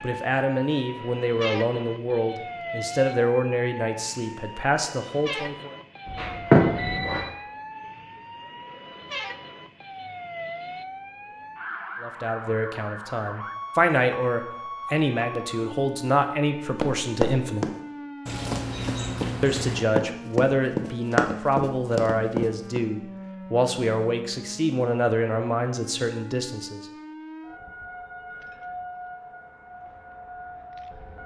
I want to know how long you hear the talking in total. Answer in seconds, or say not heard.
19 s.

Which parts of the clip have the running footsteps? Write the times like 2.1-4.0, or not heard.
16.8-22.8.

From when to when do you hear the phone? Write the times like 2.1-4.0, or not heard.
6.0-7.2.